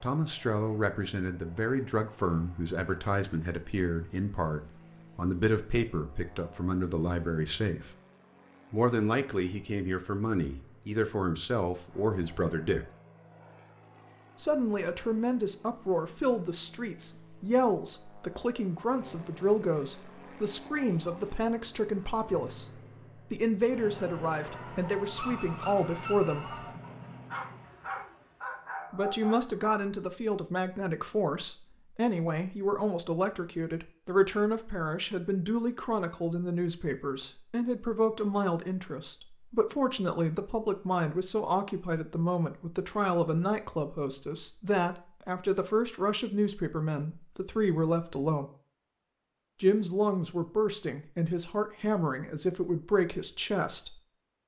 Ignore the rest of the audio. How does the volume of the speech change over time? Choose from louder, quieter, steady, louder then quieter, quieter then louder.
steady.